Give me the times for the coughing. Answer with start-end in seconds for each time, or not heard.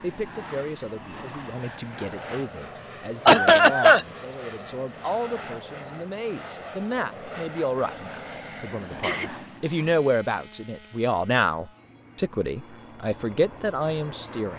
3.2-4.0, 8.2-9.3.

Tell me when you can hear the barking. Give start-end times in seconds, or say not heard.
not heard.